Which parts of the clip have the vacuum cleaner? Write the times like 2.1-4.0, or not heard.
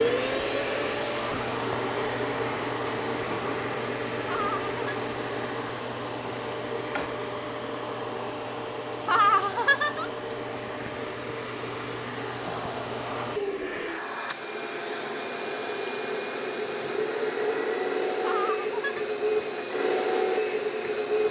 0.0-21.2.